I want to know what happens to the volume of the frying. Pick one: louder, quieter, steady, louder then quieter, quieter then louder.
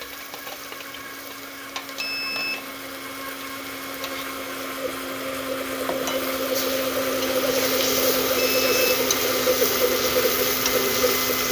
louder.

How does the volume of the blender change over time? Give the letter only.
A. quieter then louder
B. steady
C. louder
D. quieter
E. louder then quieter
C.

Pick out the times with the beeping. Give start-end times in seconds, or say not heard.
1.9-2.7, 8.3-8.9.